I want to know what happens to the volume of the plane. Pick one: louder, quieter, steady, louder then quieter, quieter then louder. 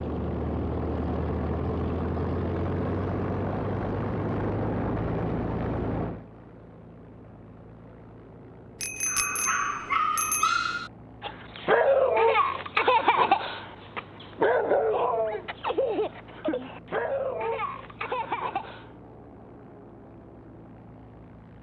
quieter.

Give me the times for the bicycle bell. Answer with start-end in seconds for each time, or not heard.
8.8-10.7.